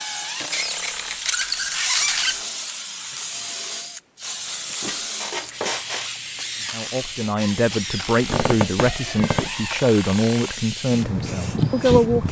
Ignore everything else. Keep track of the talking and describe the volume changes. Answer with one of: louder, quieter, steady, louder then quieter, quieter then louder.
steady.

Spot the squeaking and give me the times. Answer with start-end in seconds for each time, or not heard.
0.5-2.4, 4.8-6.2, 8.2-9.5.